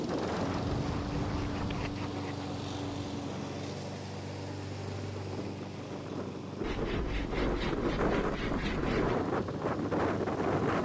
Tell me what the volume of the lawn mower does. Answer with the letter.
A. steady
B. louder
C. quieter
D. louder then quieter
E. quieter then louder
C.